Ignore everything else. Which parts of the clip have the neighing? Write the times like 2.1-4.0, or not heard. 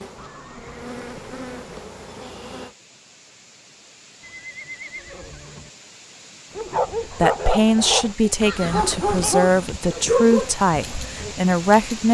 0.1-1.9, 4.2-5.7, 8.4-9.3.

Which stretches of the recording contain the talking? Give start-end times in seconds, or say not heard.
7.1-12.1.